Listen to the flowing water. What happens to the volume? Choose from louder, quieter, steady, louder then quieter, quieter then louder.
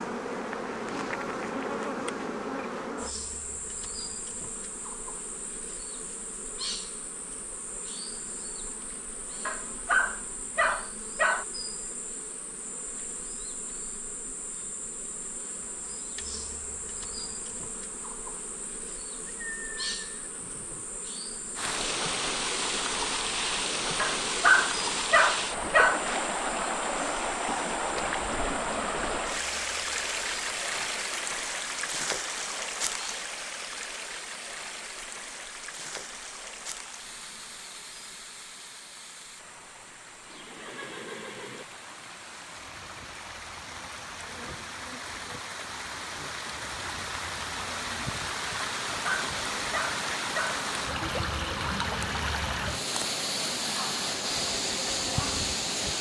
quieter then louder.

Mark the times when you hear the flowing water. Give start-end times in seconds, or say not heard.
21.6-55.9.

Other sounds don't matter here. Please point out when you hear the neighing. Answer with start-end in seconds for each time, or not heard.
19.2-20.9, 40.2-41.6.